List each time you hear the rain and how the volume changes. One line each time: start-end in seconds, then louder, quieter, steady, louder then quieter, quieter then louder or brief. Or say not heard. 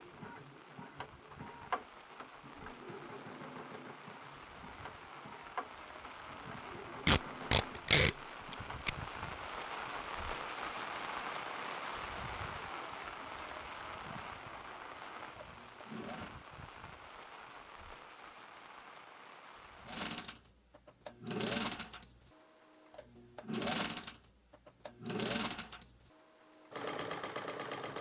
0.0-20.1 louder then quieter.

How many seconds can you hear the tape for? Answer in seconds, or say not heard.
2 s.